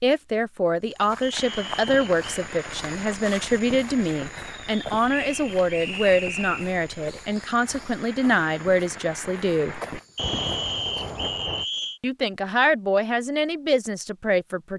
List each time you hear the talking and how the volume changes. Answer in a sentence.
You can hear the talking from 0.0 to 9.8 s, at a steady volume; and briefly from 12.0 to 14.7 s.